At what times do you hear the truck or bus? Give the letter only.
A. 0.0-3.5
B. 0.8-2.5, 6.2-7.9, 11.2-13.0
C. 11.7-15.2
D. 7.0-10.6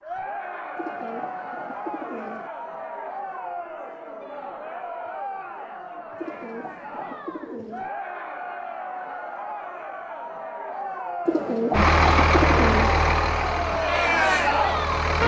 C.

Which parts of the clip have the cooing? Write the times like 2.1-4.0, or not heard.
0.8-2.5, 6.2-7.9, 11.2-13.0.